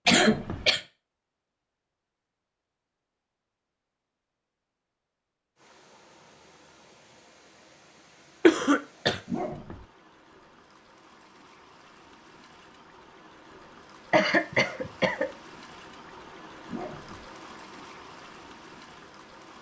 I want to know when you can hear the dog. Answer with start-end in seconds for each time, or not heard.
0.1-0.7, 9.2-9.8, 16.6-17.3.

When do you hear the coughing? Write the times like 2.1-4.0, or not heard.
0.1-0.8, 8.4-9.2, 14.1-15.2.